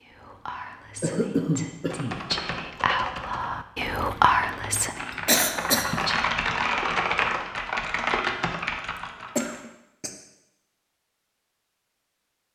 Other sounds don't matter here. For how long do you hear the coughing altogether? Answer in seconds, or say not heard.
3 s.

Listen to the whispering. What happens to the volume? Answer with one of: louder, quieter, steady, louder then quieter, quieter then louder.
louder then quieter.